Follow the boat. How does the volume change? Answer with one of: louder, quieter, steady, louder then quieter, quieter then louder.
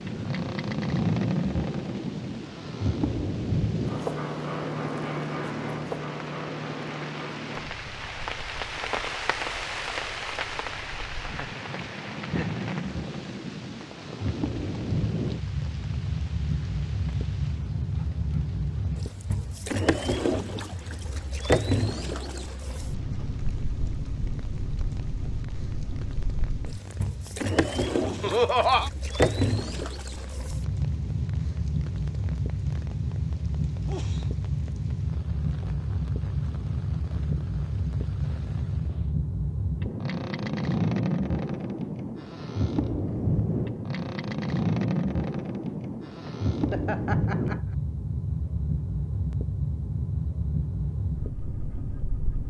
steady.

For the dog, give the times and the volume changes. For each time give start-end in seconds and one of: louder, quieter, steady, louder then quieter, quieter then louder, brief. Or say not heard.
not heard.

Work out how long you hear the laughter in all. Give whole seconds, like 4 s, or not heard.
3 s.